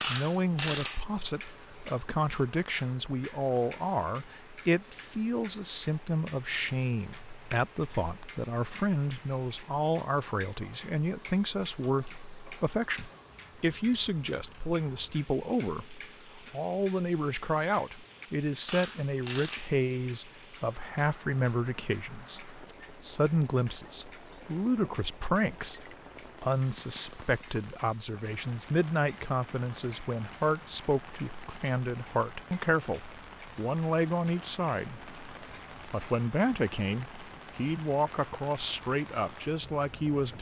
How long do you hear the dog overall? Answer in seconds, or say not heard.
not heard.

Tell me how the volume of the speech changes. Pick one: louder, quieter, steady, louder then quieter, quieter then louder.
steady.